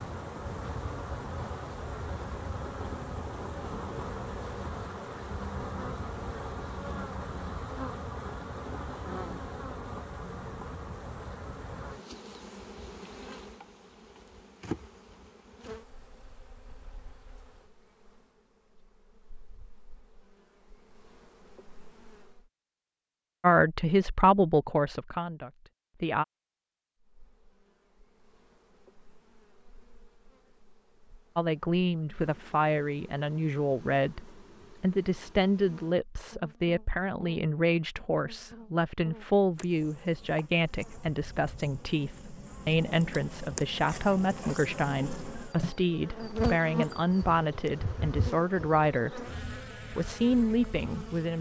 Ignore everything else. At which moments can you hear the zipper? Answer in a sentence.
You can't hear the zipper here.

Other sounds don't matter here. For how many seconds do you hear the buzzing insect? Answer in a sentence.
The buzzing insect can be heard for 47 seconds in total.